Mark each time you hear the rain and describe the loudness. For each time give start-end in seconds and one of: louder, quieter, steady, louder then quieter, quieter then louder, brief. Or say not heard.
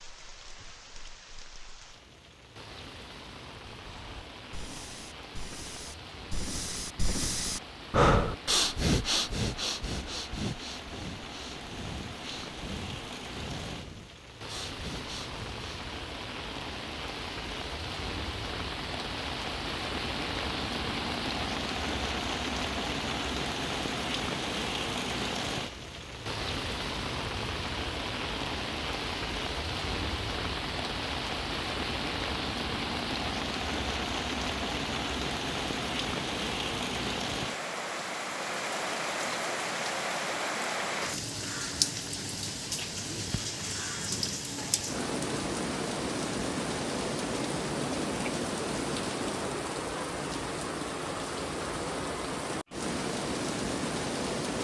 0.0-54.5 louder.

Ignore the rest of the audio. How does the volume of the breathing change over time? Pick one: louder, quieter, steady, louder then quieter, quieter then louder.
louder then quieter.